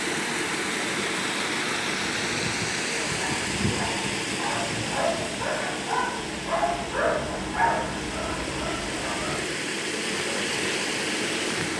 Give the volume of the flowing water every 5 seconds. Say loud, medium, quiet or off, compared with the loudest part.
loud, medium, loud.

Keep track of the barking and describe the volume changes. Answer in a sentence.
The volume of the barking goes up, then down.